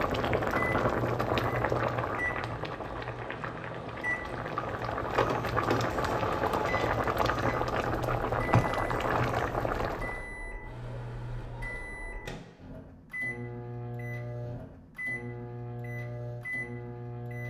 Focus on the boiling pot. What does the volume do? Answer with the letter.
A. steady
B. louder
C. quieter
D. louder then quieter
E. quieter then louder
E.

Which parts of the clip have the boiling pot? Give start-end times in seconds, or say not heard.
0.0-10.2.